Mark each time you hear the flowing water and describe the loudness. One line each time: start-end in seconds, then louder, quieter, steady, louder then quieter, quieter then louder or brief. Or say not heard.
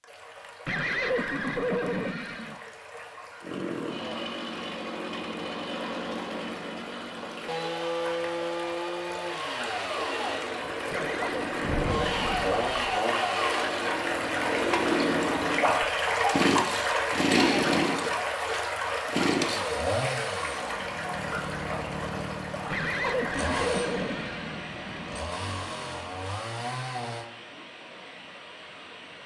0.0-29.2 louder then quieter.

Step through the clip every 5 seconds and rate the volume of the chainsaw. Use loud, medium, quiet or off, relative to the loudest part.
medium, medium, loud, loud, medium, medium.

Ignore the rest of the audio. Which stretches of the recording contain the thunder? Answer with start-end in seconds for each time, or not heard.
11.6-13.0.